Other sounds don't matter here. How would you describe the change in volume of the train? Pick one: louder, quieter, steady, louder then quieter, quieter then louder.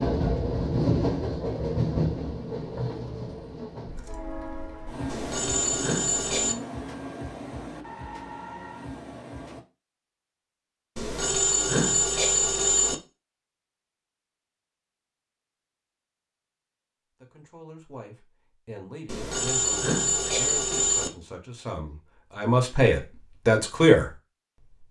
quieter.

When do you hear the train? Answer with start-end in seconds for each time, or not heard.
0.0-9.7.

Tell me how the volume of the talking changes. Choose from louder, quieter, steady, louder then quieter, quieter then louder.
louder.